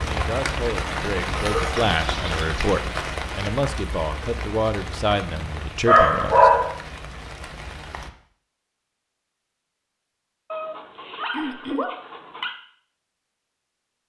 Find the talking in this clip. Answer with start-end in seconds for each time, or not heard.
0.0-6.5.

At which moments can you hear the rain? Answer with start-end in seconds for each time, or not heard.
0.0-8.1.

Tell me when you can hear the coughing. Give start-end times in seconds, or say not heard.
11.3-11.9.